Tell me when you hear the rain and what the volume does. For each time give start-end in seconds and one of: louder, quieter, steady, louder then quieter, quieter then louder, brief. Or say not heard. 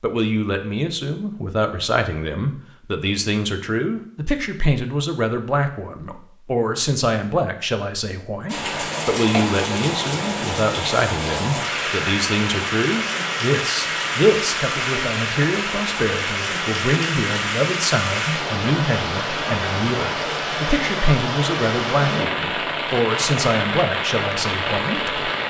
8.4-25.4 steady.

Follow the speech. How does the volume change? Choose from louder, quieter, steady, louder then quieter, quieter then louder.
steady.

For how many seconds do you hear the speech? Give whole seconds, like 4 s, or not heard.
25 s.